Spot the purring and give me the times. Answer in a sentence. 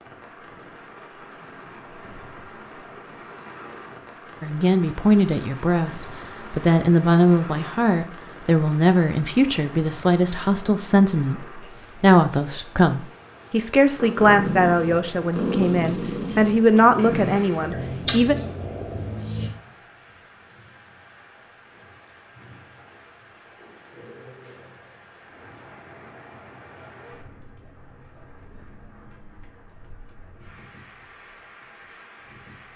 You can hear the purring from 13.9 to 19.5 s.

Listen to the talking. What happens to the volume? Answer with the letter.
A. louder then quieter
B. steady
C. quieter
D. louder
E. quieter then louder
B.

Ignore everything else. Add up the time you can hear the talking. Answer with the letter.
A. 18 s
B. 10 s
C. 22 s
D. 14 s
D.